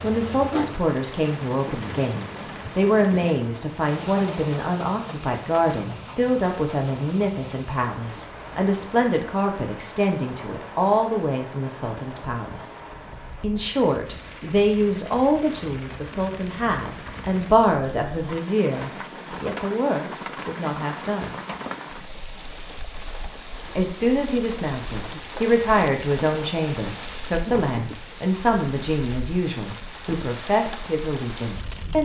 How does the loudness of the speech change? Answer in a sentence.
The volume of the speech stays about the same.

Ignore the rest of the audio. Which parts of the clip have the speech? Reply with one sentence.
The speech can be heard from 0.0 to 12.8 s, from 13.4 to 21.4 s and from 23.8 to 32.0 s.